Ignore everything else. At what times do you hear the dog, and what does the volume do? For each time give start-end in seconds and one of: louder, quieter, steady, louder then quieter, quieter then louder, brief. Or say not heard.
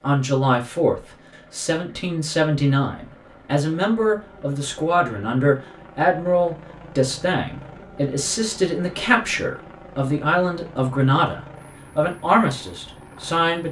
not heard.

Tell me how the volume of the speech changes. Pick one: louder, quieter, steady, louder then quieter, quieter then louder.
steady.